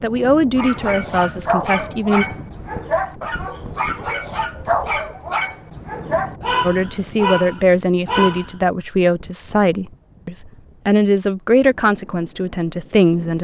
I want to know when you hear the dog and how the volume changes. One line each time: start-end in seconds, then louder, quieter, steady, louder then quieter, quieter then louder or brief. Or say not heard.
0.6-8.6 steady.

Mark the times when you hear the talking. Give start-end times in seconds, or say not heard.
0.0-2.2, 6.6-13.3.